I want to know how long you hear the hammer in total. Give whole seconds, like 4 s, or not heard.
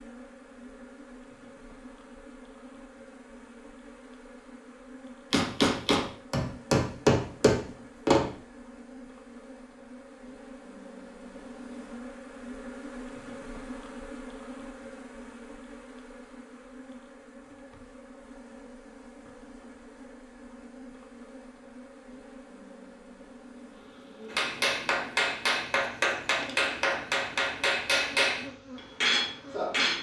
9 s.